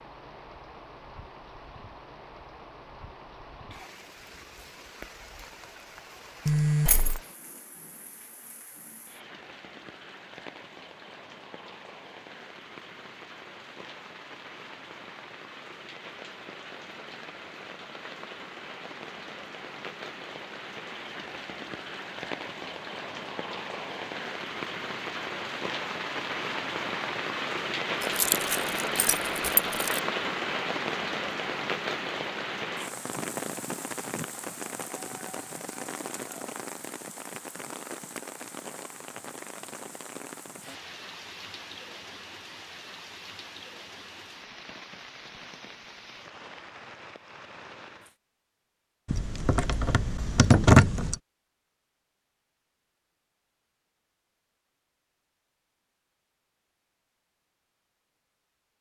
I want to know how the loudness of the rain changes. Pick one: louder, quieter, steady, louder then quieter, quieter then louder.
louder then quieter.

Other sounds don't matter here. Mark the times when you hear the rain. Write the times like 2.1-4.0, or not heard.
0.0-48.1.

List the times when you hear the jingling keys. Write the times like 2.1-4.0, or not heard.
6.5-7.2, 28.0-30.0, 49.0-51.1.